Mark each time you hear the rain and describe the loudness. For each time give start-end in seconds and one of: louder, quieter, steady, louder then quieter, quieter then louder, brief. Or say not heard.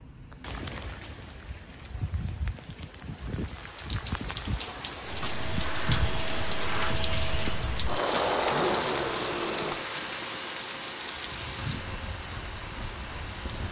0.0-13.6 louder then quieter.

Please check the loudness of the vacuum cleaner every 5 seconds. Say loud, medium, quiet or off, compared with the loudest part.
off, loud, medium.